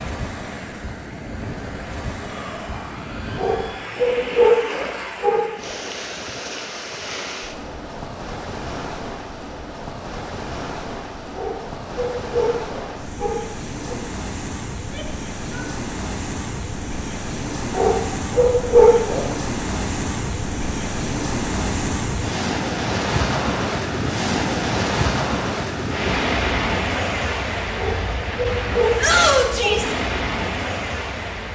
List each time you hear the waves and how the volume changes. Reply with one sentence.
The waves can be heard from 0.0 to 31.5 s, getting louder.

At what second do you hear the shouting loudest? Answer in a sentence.
The loudest moment of the shouting is at 29 seconds.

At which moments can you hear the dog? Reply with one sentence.
You can hear the dog from 3.4 to 5.5 s, from 11.3 to 14.1 s, from 17.7 to 19.3 s and from 27.8 to 29.9 s.